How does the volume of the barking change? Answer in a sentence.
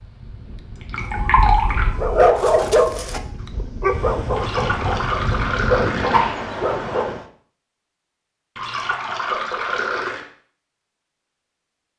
The volume of the barking goes down, then up.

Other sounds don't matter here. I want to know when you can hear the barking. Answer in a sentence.
You can hear the barking from 1.1 to 7.2 s.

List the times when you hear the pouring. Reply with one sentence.
You can hear the pouring from 0.8 to 1.9 s, from 4.3 to 6.3 s and from 8.6 to 10.2 s.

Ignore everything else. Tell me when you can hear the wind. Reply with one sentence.
The wind can be heard from 0.0 to 7.2 s.